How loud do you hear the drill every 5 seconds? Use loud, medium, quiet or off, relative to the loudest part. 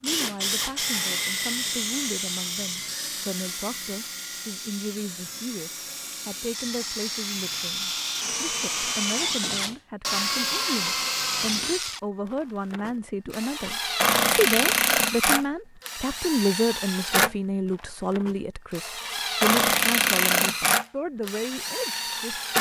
medium, medium, loud, loud, loud.